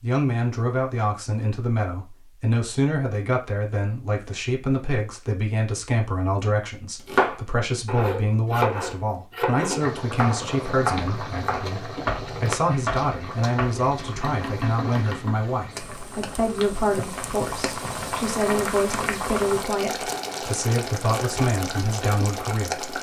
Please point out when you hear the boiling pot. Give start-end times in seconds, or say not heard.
9.8-22.9.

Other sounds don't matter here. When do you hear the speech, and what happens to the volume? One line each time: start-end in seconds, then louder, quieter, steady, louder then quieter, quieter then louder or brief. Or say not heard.
0.0-22.9 steady.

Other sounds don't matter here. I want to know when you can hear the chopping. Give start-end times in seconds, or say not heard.
7.0-15.3.